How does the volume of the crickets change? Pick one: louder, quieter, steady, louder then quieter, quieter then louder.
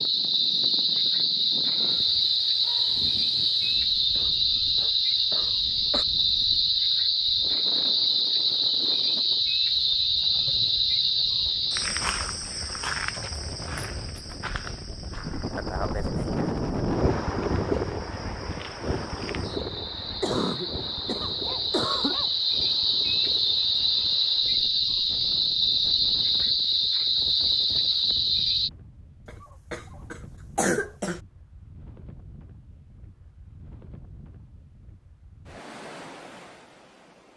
quieter then louder.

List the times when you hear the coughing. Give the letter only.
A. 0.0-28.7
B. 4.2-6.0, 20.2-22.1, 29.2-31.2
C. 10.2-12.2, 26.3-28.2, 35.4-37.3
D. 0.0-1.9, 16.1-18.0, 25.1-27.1
B.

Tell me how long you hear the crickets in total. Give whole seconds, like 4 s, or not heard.
29 s.